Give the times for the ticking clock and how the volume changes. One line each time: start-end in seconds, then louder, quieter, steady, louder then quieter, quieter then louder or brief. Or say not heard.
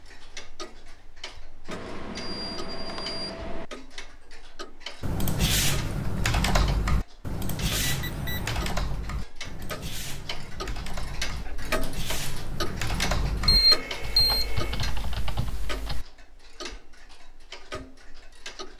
0.0-18.7 louder then quieter.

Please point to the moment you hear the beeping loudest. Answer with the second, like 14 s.
14 s.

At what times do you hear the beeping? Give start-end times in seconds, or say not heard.
1.6-3.6, 7.8-8.7, 13.4-14.9.